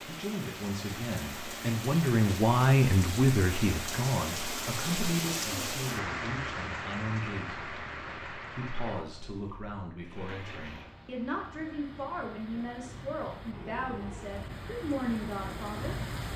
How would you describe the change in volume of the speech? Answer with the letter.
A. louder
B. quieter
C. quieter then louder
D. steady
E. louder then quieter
B.